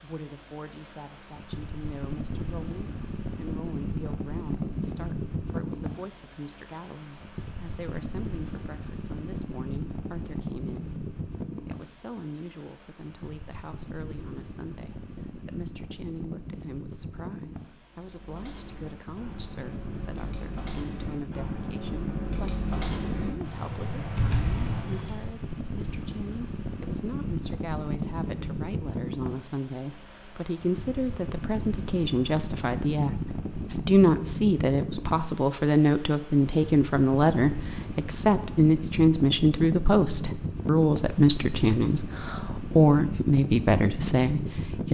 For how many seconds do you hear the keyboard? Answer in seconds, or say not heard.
7 s.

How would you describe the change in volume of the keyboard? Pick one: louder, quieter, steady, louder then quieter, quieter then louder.
louder.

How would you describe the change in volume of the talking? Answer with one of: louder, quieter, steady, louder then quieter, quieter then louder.
louder.